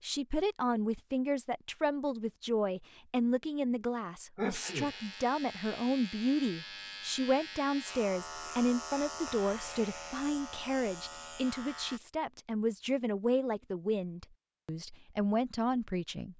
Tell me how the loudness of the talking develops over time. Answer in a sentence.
The volume of the talking stays about the same.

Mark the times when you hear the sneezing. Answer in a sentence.
You can hear the sneezing from 4.3 to 5.0 s.